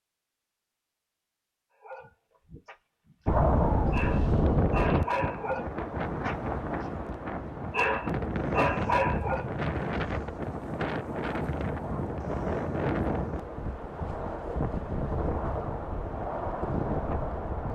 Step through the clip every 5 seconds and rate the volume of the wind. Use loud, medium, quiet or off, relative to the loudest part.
loud, medium, medium, medium.